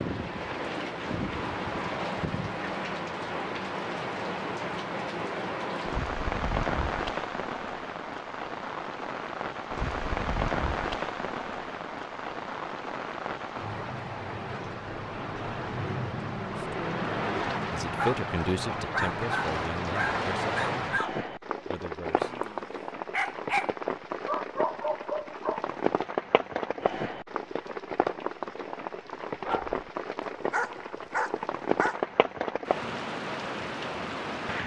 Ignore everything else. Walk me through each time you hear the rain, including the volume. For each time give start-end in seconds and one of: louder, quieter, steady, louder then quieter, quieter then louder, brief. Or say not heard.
0.0-34.6 steady.